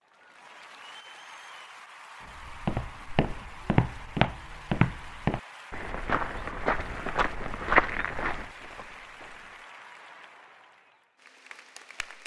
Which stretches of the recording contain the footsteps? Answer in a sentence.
The footsteps can be heard from 2.4 to 9.6 s.